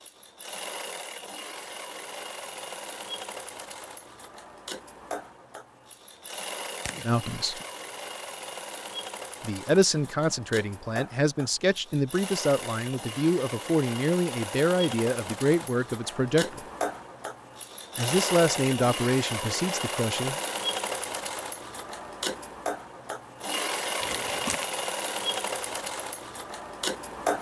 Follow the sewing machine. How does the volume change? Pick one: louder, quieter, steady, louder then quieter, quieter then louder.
louder.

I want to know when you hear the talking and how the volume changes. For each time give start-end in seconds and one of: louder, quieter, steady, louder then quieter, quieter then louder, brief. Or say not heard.
7.0-7.5 brief
9.4-16.6 steady
17.9-20.4 brief.